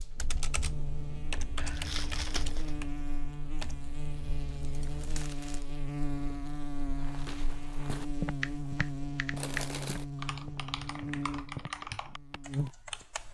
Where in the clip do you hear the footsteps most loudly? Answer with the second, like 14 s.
8 s.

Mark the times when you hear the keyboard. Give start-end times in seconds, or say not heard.
0.1-5.2, 8.4-13.2.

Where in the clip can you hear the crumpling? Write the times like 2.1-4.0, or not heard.
1.6-2.8, 5.0-5.7, 9.3-10.1.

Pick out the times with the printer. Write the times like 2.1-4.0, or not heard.
not heard.